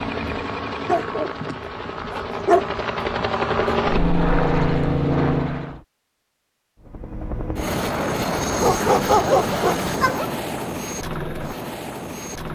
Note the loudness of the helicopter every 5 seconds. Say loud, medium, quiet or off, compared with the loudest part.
loud, loud, medium.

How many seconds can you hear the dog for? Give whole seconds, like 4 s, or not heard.
3 s.